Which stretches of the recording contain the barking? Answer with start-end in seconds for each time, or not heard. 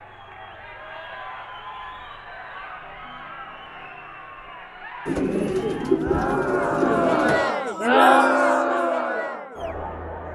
not heard.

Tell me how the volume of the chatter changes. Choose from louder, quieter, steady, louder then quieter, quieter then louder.
louder.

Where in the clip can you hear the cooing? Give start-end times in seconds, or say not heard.
5.0-7.5.